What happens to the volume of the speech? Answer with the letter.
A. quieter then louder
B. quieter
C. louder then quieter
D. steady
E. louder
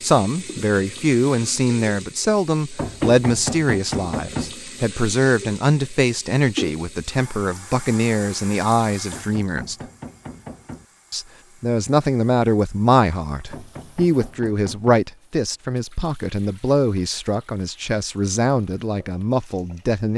D.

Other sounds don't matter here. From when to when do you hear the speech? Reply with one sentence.
The speech can be heard from 0.0 to 9.8 s and from 11.1 to 20.1 s.